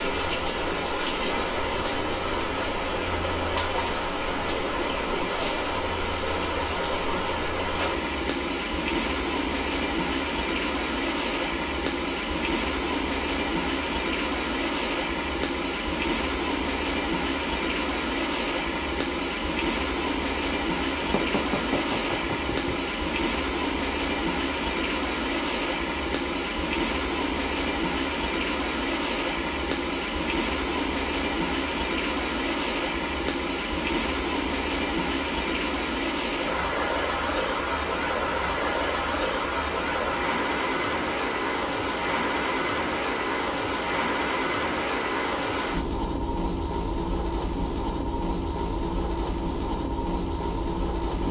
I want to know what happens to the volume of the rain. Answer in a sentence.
The loudness of the rain stays about the same.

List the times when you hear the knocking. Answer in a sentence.
The knocking can be heard from 21.0 to 22.8 s.